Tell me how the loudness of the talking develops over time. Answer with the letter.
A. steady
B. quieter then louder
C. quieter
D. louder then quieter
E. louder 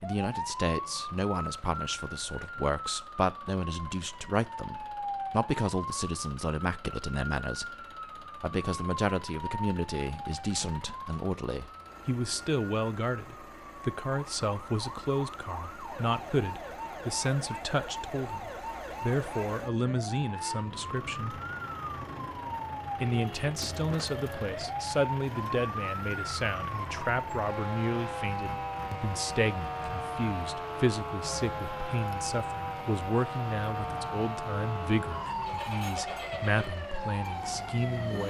A.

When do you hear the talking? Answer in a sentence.
You can hear the talking from 0.0 to 21.4 s and from 23.0 to 38.2 s.